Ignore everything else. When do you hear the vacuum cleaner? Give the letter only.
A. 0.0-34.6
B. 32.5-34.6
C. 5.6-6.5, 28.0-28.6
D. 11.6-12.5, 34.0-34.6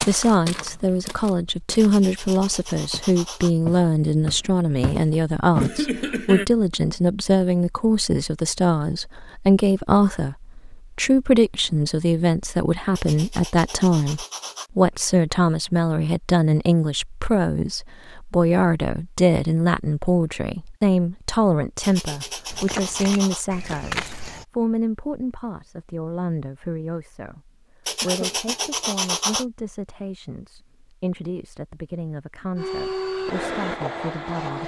B.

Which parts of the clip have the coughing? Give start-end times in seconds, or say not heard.
5.6-6.5, 28.0-28.6.